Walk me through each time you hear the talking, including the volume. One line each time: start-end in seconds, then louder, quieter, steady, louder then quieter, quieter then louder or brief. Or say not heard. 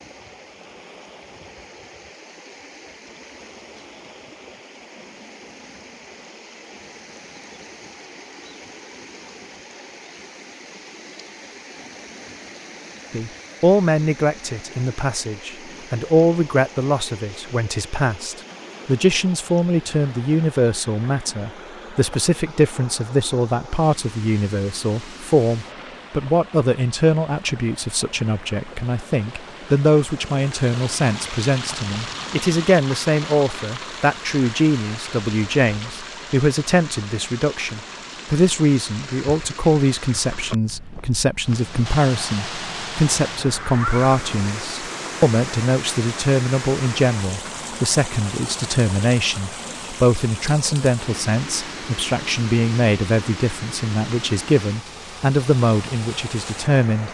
13.1-57.0 steady.